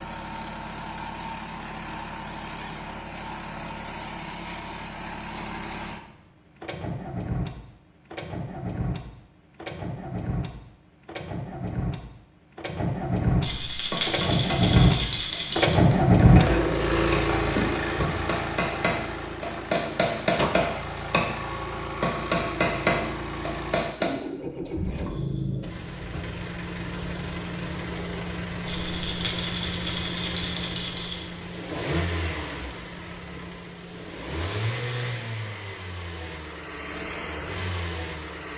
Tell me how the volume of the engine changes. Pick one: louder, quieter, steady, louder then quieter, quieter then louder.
louder then quieter.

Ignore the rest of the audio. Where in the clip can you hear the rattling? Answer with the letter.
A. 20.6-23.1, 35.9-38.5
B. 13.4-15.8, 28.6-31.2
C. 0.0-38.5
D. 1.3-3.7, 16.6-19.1
B.